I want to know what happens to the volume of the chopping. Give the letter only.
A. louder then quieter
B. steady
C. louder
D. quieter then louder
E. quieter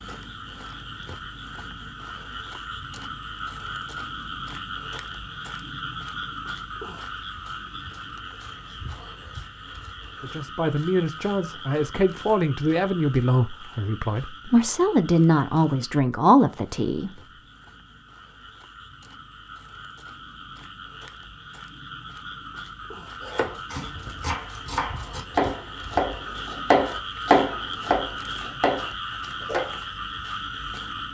A.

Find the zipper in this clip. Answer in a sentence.
You can't hear the zipper here.